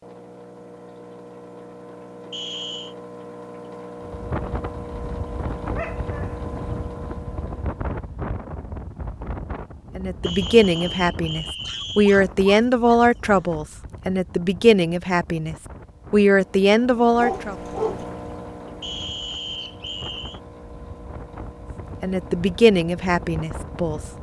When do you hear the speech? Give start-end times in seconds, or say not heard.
9.9-17.6, 22.0-24.0.